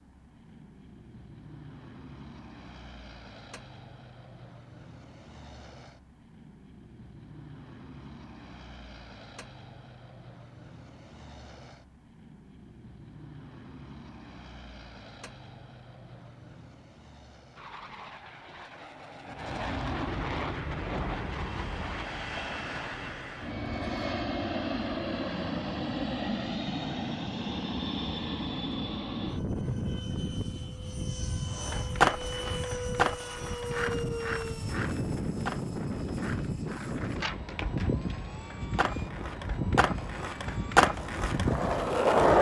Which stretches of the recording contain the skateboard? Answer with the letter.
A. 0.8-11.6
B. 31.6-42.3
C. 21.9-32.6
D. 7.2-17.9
B.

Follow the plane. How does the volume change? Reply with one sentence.
The volume of the plane goes up.